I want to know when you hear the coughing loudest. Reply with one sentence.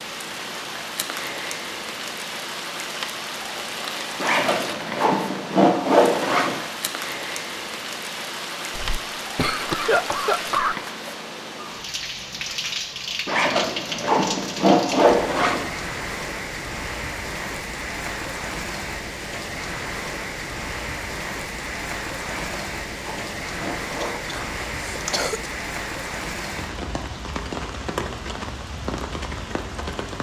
The loudest moment of the coughing is at 10 seconds.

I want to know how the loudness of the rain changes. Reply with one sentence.
The loudness of the rain stays about the same.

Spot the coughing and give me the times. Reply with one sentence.
The coughing can be heard from 8.8 to 10.8 s and from 24.0 to 25.5 s.